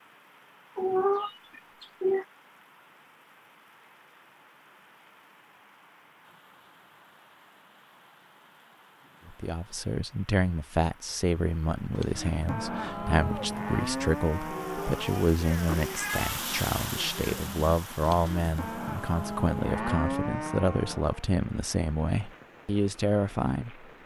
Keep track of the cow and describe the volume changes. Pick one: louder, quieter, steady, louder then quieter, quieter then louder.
quieter then louder.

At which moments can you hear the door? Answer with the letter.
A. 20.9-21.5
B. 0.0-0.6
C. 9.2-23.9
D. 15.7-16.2
D.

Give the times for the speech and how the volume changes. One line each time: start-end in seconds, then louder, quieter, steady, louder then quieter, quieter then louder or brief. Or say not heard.
9.2-23.9 steady.